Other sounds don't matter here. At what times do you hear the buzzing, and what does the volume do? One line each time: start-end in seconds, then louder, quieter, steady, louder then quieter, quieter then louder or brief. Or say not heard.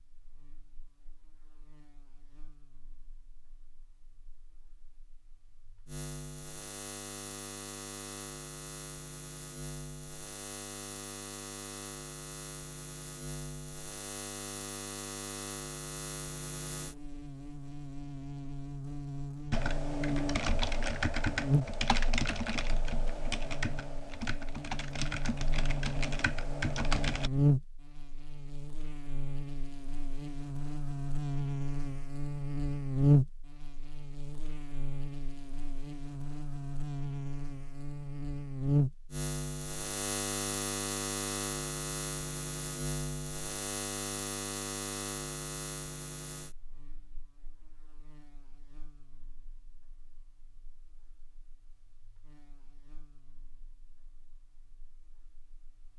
0.0-55.9 louder then quieter.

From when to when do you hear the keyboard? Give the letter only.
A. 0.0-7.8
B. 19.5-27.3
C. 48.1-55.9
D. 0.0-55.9
B.